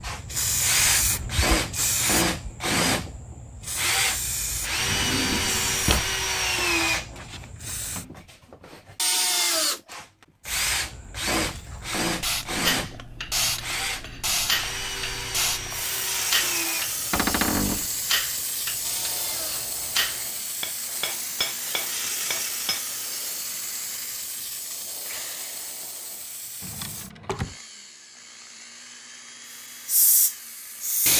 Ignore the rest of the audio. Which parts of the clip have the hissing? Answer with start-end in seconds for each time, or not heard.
0.0-8.1, 10.4-27.1, 29.9-31.1.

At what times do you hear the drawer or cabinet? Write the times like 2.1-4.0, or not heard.
4.8-6.1, 17.1-17.9, 26.6-27.6.